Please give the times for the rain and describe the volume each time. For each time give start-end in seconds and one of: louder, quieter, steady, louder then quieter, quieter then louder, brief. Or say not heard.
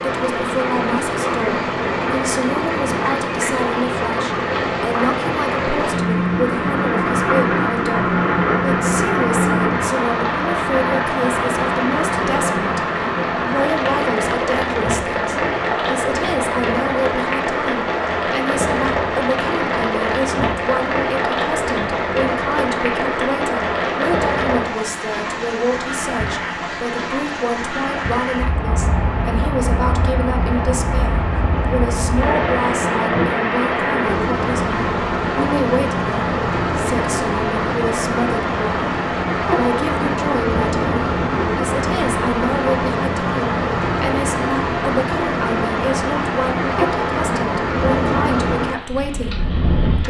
0.0-50.0 steady.